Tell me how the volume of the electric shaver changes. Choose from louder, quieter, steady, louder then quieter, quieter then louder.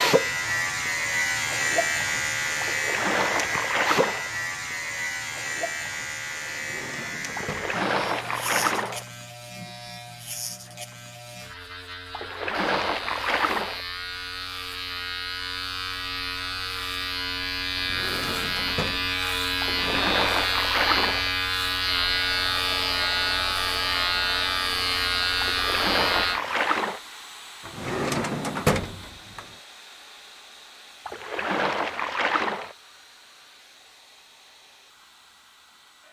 quieter then louder.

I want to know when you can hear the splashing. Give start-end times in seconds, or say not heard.
2.6-4.3, 7.3-9.1, 12.1-13.8, 19.6-21.3, 25.4-27.0, 31.1-32.8.